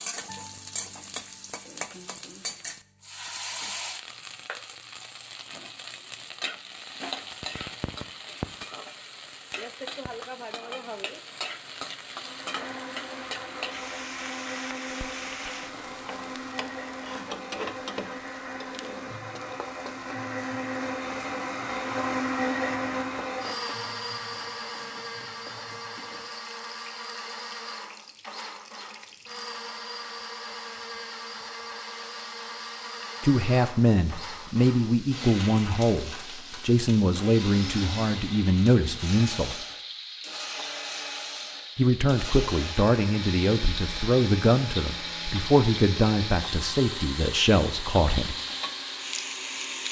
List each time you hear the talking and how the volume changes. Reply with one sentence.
The talking can be heard from 33.2 to 39.5 s, at a steady volume; and from 41.8 to 48.4 s, at a steady volume.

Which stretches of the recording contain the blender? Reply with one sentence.
The blender can be heard from 12.1 to 49.8 s.